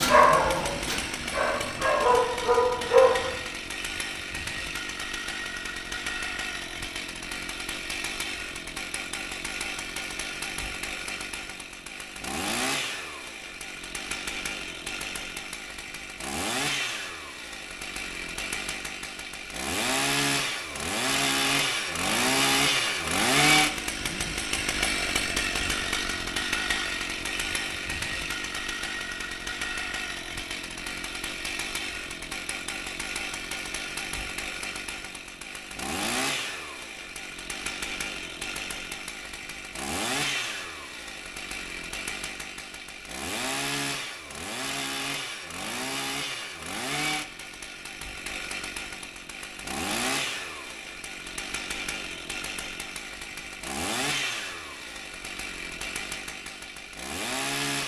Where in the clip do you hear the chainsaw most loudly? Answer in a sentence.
The loudest moment of the chainsaw is at 23 seconds.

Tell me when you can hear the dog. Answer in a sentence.
You can hear the dog from 0.0 to 3.3 s.